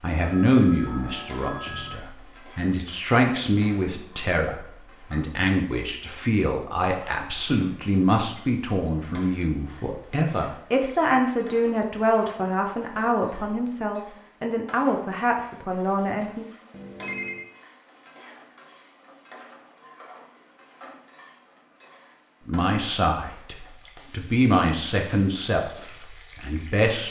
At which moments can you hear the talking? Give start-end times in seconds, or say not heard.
0.0-16.4, 22.4-27.0.